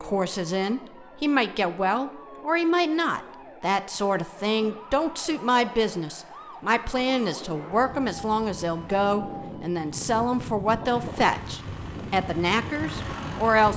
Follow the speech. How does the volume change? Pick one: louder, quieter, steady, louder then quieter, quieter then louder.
steady.